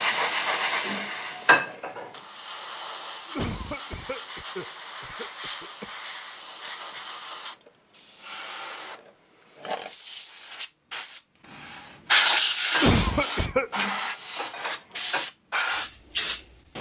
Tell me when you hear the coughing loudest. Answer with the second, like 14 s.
13 s.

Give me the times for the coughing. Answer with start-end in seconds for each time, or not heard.
3.2-5.9, 12.8-13.7.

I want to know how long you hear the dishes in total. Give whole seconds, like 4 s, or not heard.
5 s.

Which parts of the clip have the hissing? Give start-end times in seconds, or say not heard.
0.0-16.7.